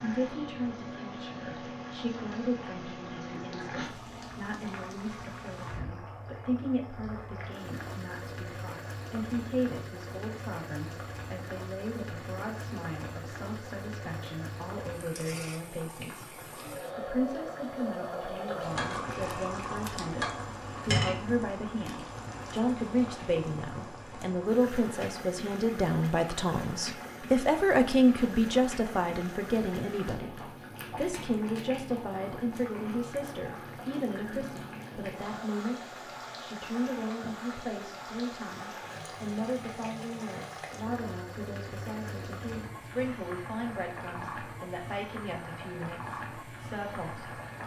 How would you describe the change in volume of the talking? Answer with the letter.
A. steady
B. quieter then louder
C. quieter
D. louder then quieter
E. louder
D.